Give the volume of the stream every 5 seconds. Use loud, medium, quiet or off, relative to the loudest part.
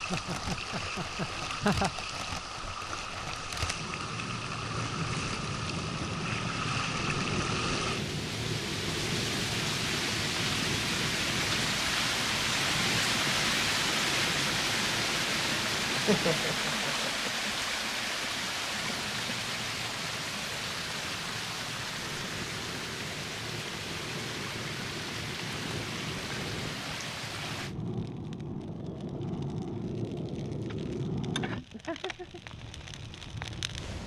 medium, medium, loud, loud, medium, medium, off.